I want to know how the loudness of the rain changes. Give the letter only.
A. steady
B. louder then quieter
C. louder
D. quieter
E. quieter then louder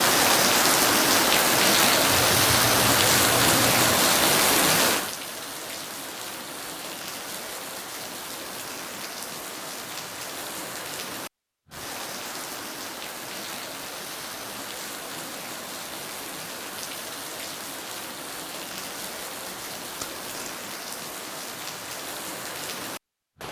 D.